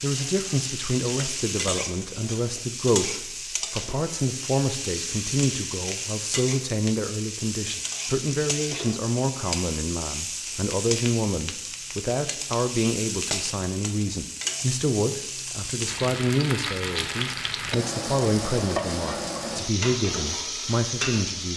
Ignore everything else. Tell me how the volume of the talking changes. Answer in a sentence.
The loudness of the talking stays about the same.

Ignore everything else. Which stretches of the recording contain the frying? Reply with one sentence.
You can hear the frying from 0.0 to 21.5 s.